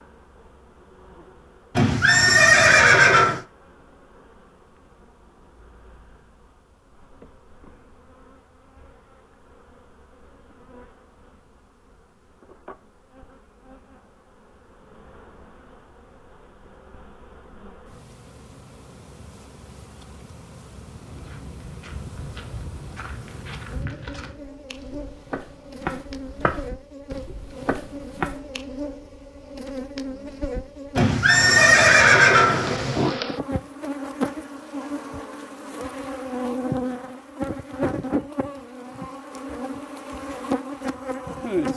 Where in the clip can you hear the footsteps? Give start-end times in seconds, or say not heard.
20.9-28.4.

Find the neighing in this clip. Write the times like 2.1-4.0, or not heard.
1.8-3.4, 30.9-33.2.